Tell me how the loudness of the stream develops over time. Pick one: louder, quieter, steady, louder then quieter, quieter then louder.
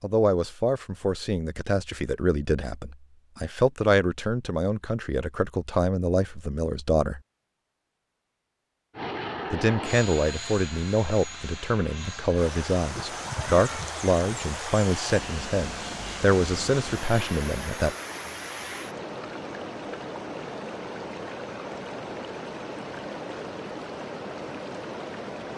steady.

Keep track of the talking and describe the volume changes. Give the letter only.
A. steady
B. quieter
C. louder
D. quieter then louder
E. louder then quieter
A.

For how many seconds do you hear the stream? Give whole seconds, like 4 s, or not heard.
13 s.